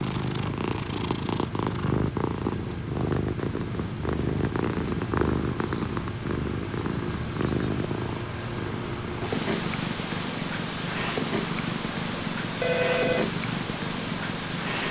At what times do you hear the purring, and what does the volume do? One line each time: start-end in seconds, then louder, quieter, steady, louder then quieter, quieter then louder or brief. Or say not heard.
0.0-14.8 steady.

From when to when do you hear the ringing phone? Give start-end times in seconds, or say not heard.
12.6-13.3.